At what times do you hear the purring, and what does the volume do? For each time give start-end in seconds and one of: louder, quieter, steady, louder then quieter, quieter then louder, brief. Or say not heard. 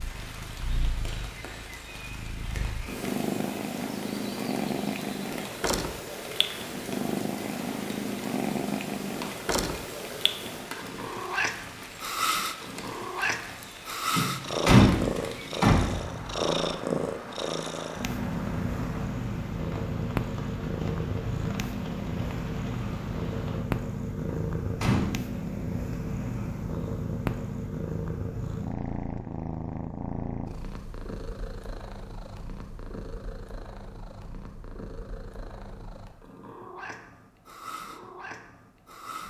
0.0-39.2 quieter.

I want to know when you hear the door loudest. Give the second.
15 s.